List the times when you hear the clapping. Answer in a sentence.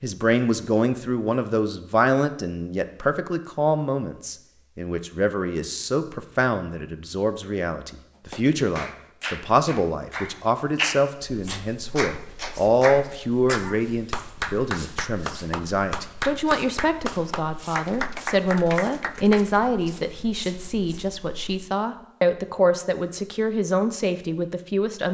You can hear the clapping from 8.2 to 19.6 s.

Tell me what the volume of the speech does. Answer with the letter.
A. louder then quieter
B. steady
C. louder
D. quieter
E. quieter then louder
B.